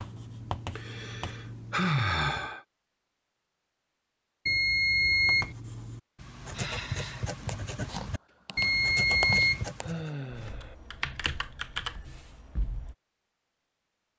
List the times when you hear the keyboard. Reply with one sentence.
You can hear the keyboard from 7.5 to 12.9 s.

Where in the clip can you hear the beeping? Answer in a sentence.
The beeping can be heard from 4.5 to 5.5 s and from 8.6 to 9.7 s.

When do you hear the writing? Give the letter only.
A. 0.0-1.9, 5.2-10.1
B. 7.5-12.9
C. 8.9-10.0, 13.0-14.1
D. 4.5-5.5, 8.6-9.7
A.